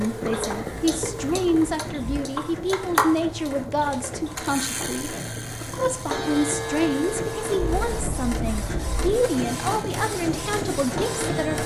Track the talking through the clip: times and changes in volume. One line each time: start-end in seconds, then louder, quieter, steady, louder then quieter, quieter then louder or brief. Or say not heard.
0.0-11.6 steady.